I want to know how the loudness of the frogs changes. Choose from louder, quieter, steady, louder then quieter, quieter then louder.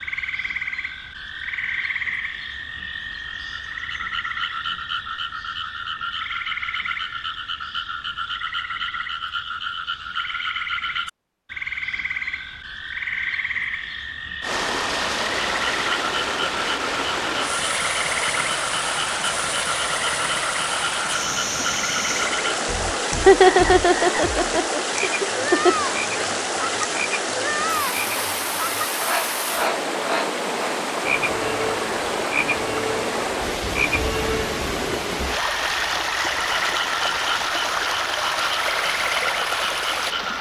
steady.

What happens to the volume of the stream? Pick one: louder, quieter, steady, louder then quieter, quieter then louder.
steady.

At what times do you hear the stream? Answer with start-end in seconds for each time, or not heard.
14.4-40.3.